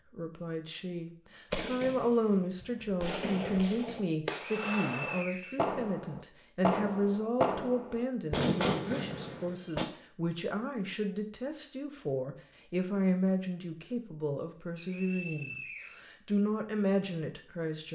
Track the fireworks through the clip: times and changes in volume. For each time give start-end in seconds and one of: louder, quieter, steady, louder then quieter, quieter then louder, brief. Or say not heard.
1.5-9.8 louder.